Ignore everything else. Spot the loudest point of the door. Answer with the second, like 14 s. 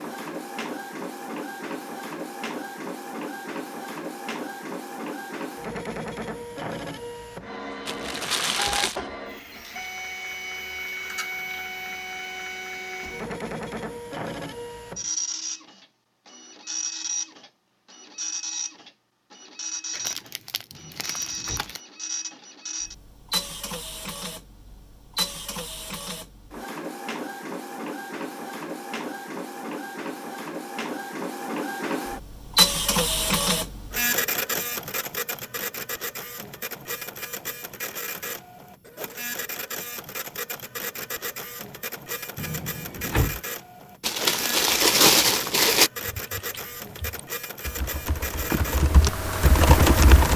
43 s.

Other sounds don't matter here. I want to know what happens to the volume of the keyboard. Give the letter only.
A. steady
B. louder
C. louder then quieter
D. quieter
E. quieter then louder
B.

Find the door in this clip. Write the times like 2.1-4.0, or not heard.
20.7-21.8, 42.4-43.4.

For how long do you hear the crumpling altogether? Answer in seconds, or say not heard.
5 s.